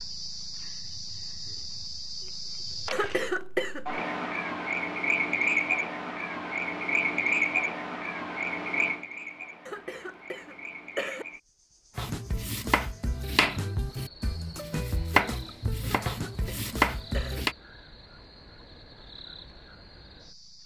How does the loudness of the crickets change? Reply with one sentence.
The volume of the crickets goes up, then down.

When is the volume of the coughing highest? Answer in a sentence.
The loudest moment of the coughing is at 3 seconds.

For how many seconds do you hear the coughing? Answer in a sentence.
You can hear the coughing for 4 seconds altogether.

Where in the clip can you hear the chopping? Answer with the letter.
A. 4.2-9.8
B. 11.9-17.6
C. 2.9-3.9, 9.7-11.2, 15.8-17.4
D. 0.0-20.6
B.